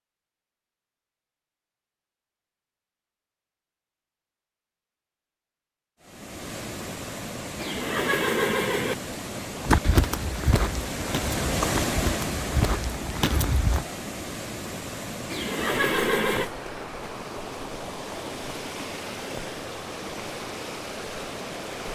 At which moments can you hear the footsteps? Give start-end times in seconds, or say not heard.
9.6-13.8.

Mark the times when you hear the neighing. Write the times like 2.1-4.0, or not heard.
7.5-8.9, 15.3-16.5.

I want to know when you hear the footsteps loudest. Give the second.
10 s.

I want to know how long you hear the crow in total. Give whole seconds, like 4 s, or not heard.
not heard.